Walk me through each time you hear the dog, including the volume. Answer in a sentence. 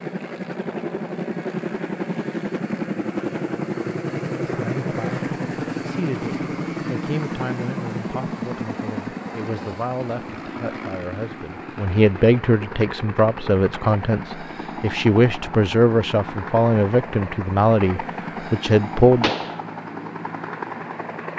You can't hear the dog here.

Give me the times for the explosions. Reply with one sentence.
You can hear the explosions from 19.2 to 19.6 s.